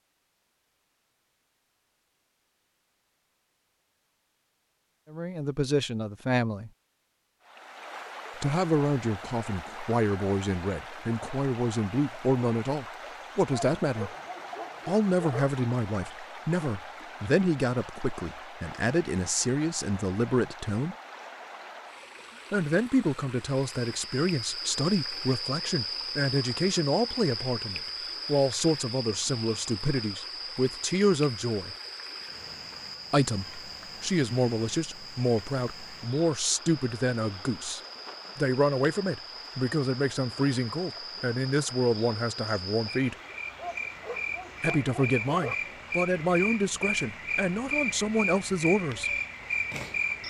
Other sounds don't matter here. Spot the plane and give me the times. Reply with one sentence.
You can't hear the plane here.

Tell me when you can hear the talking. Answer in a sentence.
You can hear the talking from 5.1 to 6.7 s, from 8.4 to 14.1 s, from 14.8 to 20.9 s, from 22.5 to 31.8 s, from 33.1 to 43.1 s and from 44.6 to 49.1 s.